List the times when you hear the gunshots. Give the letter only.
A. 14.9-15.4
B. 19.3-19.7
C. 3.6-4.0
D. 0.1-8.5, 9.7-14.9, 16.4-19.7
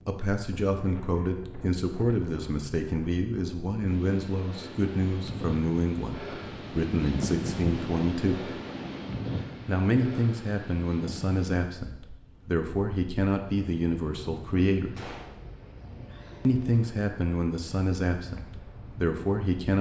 A.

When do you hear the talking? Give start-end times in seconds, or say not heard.
0.1-8.5, 9.7-14.9, 16.4-19.7.